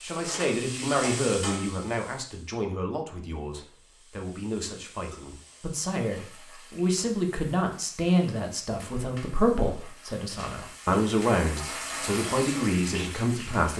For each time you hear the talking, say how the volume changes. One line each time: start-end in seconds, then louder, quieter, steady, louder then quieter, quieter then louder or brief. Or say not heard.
0.0-13.7 quieter then louder.